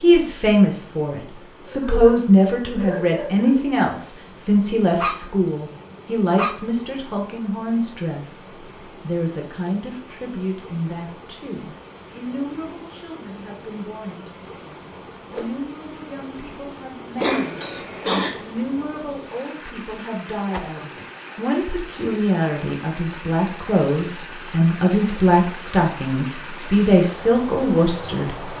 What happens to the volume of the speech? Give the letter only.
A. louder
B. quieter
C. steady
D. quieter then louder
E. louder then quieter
D.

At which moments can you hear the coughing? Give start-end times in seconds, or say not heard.
17.1-18.3.